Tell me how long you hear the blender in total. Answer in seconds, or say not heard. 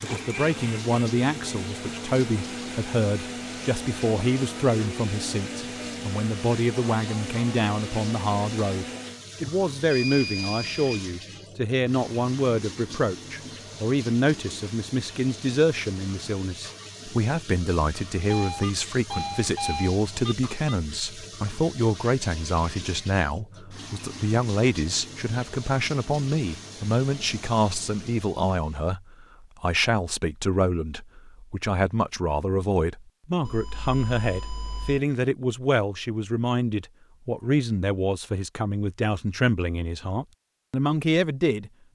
9 s.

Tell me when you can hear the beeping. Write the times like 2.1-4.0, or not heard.
9.4-11.1, 18.2-20.5, 33.5-35.0.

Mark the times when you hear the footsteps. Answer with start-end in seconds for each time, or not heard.
not heard.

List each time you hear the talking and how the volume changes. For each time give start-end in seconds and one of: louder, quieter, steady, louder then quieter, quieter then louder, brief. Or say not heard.
0.0-41.7 steady.